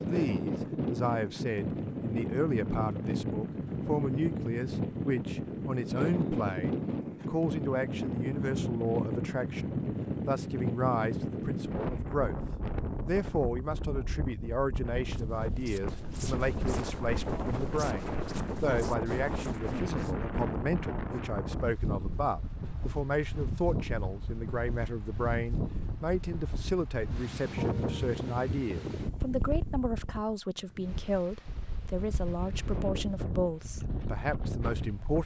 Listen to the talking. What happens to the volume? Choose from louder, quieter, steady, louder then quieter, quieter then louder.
steady.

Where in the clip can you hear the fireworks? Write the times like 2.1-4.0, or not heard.
not heard.